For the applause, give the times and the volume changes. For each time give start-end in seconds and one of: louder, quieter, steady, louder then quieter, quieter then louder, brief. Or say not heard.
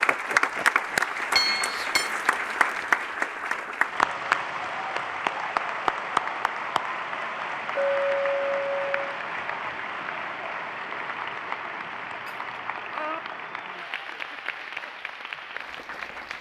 0.0-16.3 quieter.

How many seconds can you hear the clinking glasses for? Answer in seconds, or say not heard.
3 s.